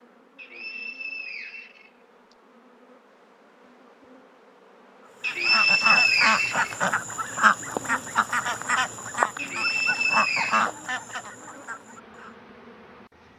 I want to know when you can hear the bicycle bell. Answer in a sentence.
You can't hear the bicycle bell here.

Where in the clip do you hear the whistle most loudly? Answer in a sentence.
The loudest moment of the whistle is at 6 seconds.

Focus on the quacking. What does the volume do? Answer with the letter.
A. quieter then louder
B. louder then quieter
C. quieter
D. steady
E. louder
C.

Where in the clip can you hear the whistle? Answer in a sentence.
You can hear the whistle from 0.3 to 2.4 s, from 5.2 to 6.8 s and from 9.3 to 10.7 s.